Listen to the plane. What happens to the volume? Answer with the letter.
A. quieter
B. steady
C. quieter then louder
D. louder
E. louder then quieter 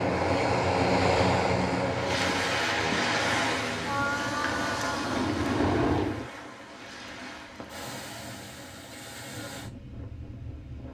C.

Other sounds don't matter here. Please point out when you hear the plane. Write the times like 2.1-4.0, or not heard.
0.0-6.3.